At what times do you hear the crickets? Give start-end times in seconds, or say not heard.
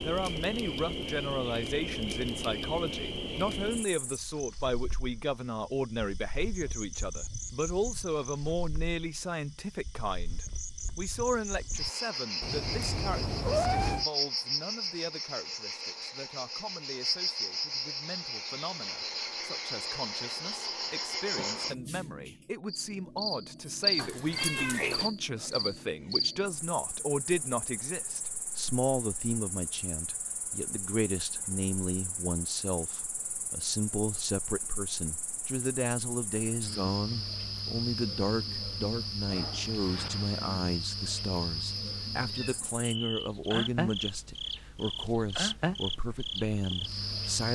0.0-47.5.